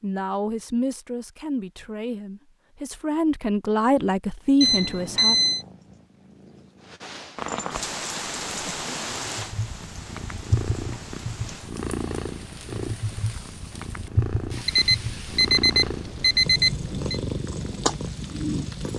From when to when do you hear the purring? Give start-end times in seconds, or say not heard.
4.4-18.9.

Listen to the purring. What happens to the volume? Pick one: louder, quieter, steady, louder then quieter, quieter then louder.
louder.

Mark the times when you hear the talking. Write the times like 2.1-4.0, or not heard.
0.0-5.3.